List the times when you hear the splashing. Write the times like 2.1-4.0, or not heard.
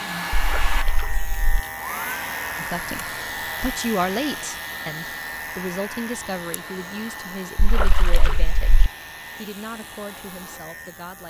0.3-1.6, 7.5-8.9.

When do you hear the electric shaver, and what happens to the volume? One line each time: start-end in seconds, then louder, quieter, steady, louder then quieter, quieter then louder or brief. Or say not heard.
0.0-11.2 quieter.